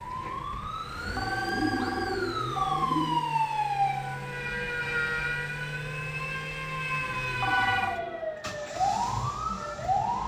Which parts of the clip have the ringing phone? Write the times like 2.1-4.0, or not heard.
0.8-2.9, 7.2-8.0.